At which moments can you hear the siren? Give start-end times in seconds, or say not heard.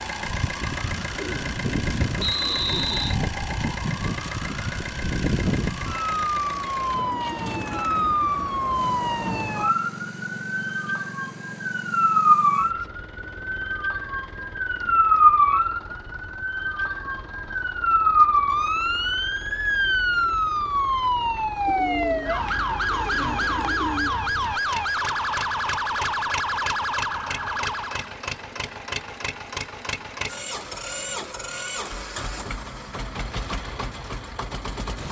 0.0-28.1.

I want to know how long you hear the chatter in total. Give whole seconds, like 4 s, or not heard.
not heard.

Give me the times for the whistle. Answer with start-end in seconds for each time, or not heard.
2.1-3.2.